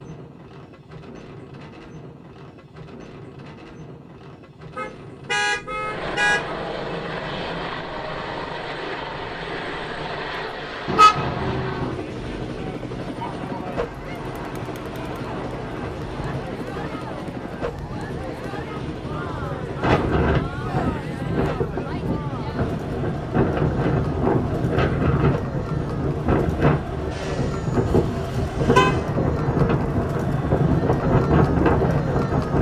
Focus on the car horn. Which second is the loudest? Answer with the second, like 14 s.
11 s.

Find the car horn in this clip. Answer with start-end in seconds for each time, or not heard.
4.8-6.5, 10.8-12.0, 27.9-29.1.